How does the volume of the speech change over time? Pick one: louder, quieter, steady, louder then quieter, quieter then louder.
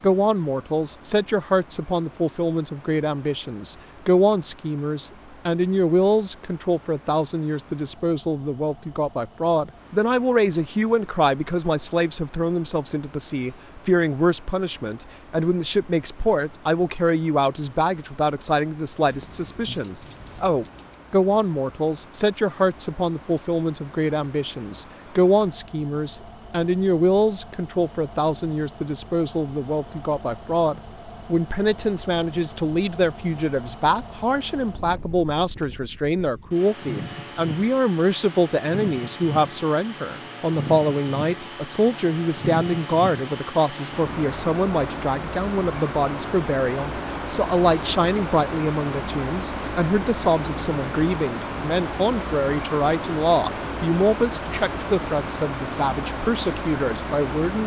steady.